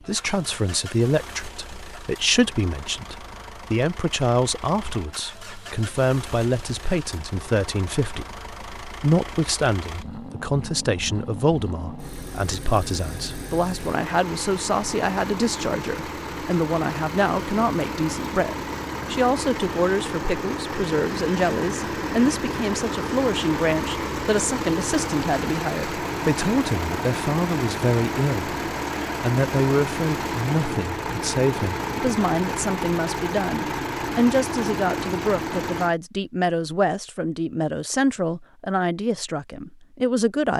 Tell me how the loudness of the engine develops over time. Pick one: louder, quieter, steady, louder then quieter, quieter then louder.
louder.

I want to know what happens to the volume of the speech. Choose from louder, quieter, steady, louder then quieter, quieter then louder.
steady.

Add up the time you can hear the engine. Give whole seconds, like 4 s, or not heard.
36 s.